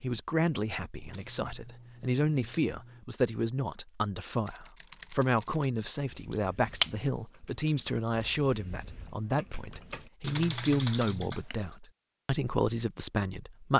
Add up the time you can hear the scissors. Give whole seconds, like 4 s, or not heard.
4 s.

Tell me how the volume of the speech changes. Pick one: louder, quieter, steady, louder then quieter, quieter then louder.
steady.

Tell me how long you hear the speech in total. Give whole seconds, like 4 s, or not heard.
14 s.